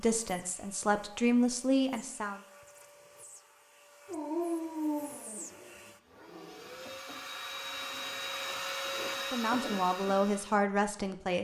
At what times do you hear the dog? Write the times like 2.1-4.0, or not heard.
4.0-6.9.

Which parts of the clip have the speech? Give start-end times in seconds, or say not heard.
0.0-2.4, 9.2-11.3.